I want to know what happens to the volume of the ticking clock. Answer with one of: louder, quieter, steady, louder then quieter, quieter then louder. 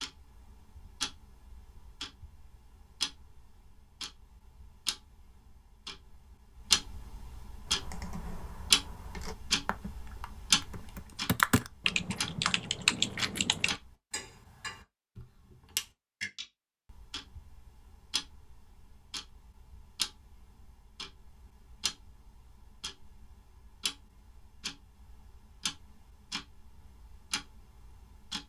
louder then quieter.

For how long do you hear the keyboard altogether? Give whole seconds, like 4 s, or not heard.
6 s.